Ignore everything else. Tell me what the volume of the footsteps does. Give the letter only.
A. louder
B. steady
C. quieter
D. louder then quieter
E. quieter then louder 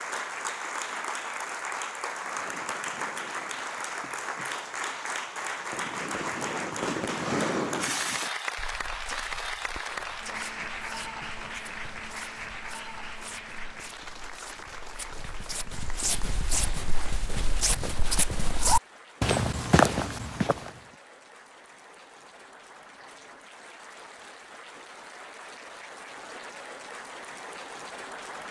A.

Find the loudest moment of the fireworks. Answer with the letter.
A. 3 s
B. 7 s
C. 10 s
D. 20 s
B.